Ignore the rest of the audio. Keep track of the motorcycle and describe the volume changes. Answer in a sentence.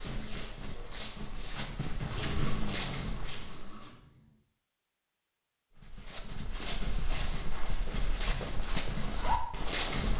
The volume of the motorcycle goes up, then down.